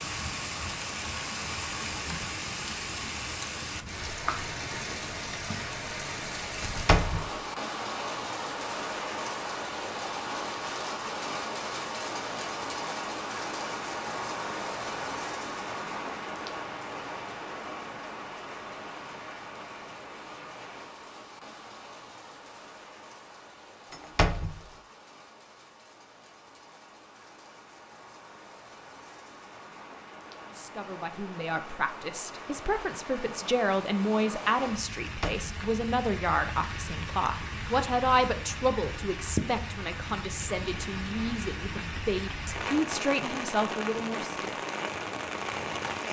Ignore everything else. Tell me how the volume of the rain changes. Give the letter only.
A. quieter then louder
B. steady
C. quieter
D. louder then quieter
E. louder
A.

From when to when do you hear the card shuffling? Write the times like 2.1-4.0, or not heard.
not heard.